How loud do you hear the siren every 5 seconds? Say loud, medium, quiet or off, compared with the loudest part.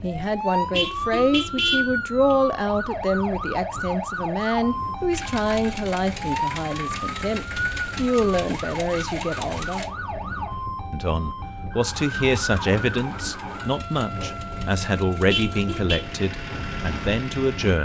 loud, loud, medium, medium.